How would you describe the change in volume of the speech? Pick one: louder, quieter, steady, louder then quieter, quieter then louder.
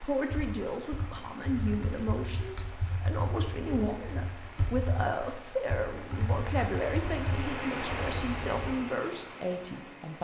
steady.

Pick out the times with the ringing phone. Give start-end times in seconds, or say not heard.
not heard.